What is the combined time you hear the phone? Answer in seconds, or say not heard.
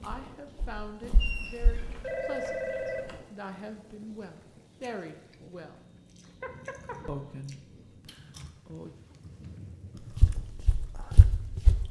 3 s.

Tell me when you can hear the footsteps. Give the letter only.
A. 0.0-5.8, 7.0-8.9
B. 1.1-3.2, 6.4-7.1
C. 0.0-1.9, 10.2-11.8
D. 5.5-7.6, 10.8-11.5
C.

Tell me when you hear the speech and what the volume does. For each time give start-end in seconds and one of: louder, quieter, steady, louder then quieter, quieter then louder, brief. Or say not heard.
0.0-5.8 quieter then louder
7.0-8.9 brief.